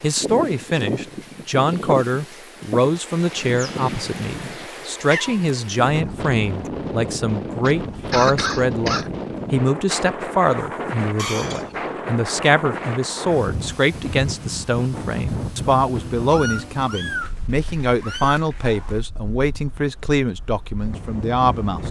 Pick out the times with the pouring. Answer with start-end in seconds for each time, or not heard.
not heard.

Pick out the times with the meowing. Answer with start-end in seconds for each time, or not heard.
4.9-5.4, 11.2-11.8, 16.3-19.0.